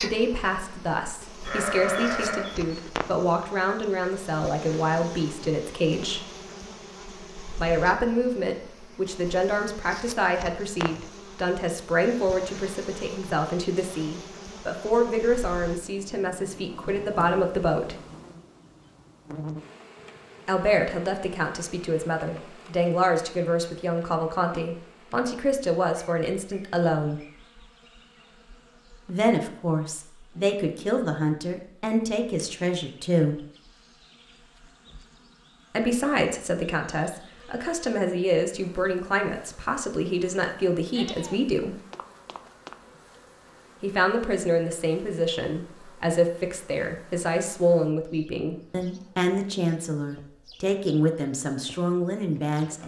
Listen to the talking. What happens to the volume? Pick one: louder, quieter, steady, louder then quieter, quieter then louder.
steady.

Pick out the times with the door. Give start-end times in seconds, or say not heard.
not heard.